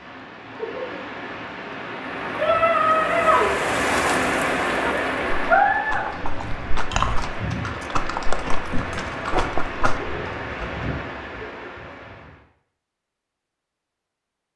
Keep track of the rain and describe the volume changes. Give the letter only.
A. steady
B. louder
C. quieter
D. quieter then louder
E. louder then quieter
E.